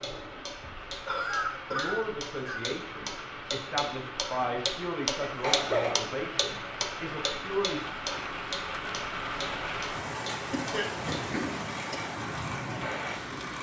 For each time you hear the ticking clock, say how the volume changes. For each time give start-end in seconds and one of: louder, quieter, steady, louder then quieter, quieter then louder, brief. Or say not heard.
0.0-13.5 louder then quieter.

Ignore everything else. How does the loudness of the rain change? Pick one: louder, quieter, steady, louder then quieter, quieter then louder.
louder.